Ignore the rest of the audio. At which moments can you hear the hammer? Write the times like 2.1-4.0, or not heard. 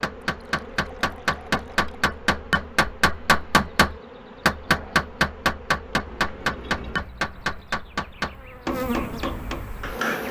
0.0-10.2.